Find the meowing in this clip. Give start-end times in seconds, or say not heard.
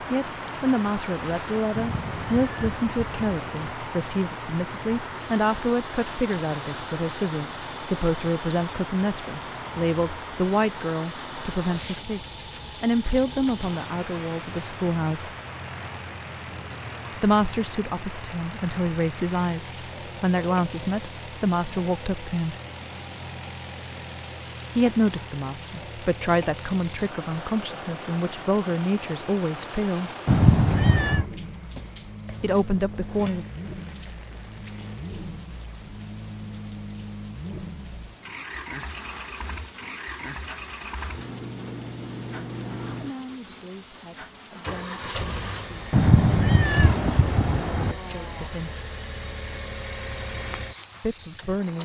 1.7-3.8, 30.2-31.2, 45.9-48.0.